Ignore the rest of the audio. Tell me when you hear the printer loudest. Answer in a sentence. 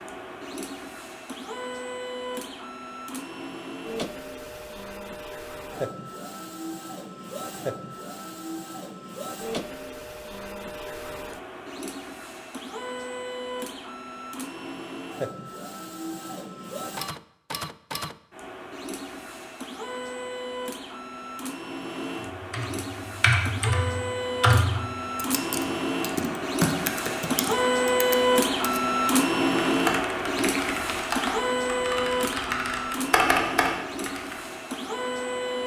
The loudest moment of the printer is at 28 seconds.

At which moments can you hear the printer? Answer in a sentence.
You can hear the printer from 0.0 to 35.6 s.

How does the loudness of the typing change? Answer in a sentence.
The volume of the typing goes down, then up.